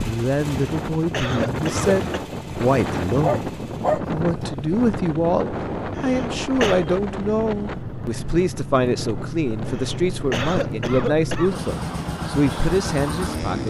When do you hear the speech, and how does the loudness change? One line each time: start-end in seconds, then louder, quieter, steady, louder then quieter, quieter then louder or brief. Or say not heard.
0.0-13.6 steady.